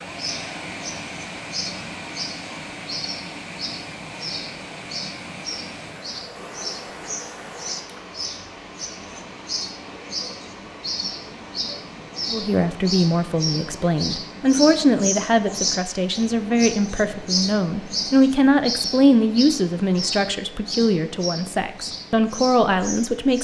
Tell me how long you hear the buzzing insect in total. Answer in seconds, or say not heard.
not heard.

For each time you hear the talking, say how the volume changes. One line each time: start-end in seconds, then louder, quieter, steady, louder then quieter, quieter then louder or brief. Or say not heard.
12.3-23.4 steady.